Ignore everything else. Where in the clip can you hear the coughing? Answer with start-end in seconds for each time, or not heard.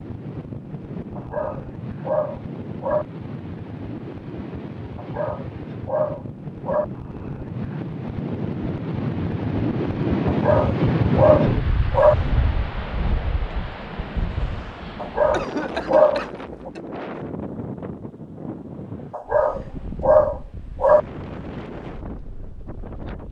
15.3-16.8.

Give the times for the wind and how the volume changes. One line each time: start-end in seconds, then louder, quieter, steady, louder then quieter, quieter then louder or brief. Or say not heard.
0.0-23.2 louder then quieter.